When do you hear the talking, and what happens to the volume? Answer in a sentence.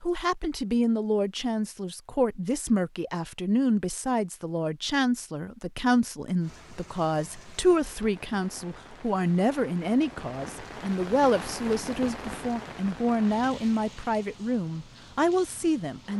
The talking can be heard from 0.0 to 16.1 s, at a steady volume.